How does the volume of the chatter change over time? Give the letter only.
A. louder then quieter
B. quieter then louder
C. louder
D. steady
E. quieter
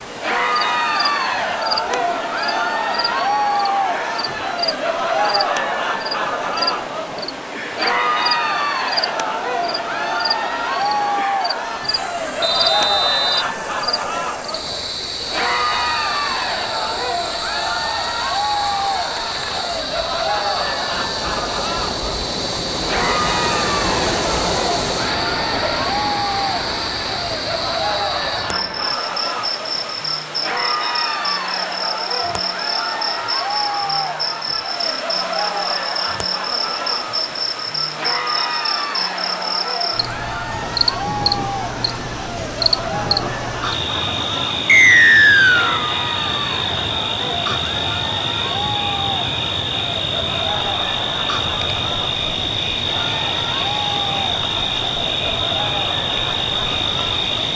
E.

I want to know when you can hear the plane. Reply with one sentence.
You can't hear the plane here.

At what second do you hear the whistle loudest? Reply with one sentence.
The loudest moment of the whistle is at 45 seconds.